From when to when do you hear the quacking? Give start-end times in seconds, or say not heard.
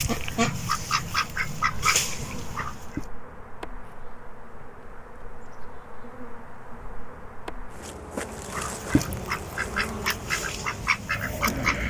0.0-3.0, 8.3-11.8.